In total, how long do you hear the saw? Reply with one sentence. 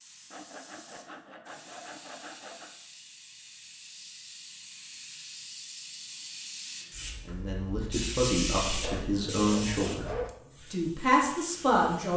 You can hear the saw for 4 seconds altogether.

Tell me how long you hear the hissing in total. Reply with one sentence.
The hissing can be heard for 12 seconds in total.